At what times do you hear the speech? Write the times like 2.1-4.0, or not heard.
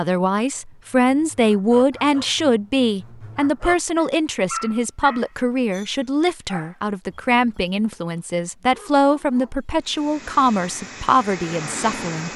0.0-12.3.